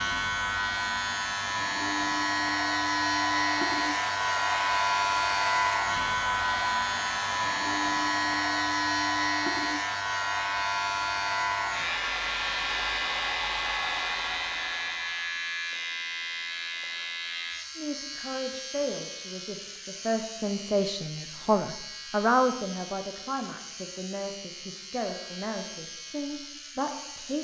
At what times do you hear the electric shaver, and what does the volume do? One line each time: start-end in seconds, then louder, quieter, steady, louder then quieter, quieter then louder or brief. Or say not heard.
0.0-27.3 quieter.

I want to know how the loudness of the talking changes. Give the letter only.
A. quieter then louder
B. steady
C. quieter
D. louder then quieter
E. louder
D.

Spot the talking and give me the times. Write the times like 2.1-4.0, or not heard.
17.8-27.3.